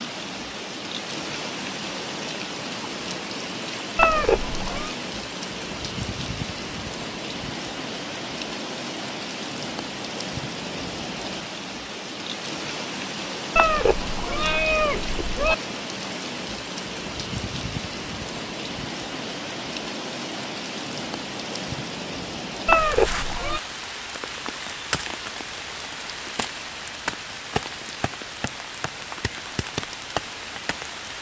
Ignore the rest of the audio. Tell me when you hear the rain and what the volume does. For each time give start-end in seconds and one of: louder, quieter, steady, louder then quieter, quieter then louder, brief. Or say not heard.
0.0-31.1 steady.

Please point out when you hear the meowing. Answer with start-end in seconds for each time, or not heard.
4.0-5.0, 13.6-15.6, 22.6-23.6.